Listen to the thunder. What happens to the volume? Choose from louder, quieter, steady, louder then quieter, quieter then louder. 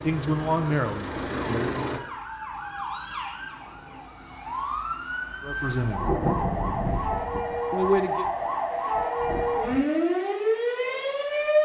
quieter then louder.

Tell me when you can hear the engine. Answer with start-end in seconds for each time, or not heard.
0.0-2.0.